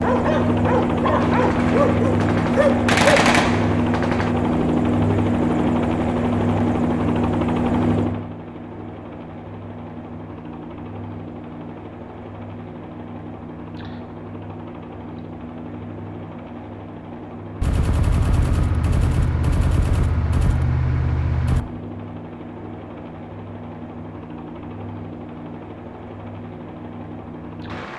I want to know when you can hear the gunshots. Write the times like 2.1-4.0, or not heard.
1.2-4.3, 17.6-21.6.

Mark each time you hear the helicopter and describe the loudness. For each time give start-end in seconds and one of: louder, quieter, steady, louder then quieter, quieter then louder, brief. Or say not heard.
0.0-27.9 quieter.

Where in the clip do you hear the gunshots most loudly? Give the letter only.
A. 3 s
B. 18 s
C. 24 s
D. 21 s
A.